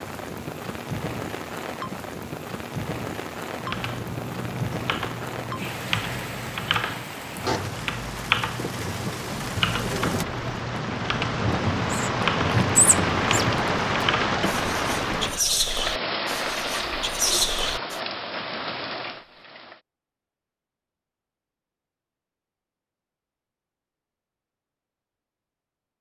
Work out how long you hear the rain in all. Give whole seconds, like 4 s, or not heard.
20 s.